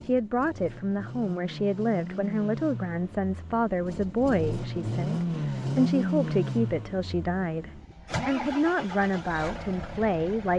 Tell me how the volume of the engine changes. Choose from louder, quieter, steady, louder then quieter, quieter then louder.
louder then quieter.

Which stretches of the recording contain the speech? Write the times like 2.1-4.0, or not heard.
0.0-10.5.